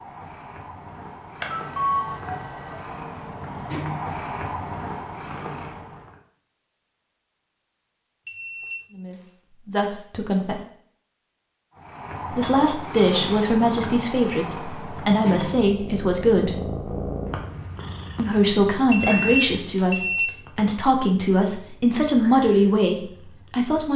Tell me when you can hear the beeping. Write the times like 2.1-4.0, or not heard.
1.4-2.9, 8.2-9.2, 18.9-20.3.